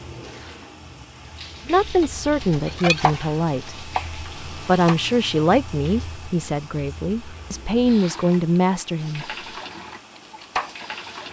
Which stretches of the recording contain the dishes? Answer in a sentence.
You can hear the dishes from 2.0 to 3.1 s.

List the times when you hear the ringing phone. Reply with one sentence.
The ringing phone can't be heard in this clip.